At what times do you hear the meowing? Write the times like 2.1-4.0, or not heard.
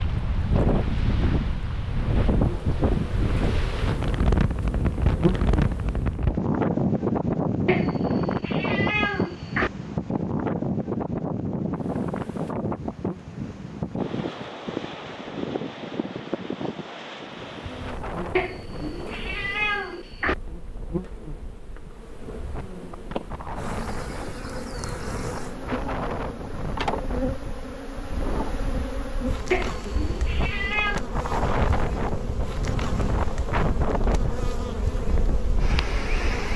7.7-9.7, 18.4-20.4, 29.5-31.0.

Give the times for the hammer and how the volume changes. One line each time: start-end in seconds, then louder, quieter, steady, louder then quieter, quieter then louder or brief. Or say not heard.
not heard.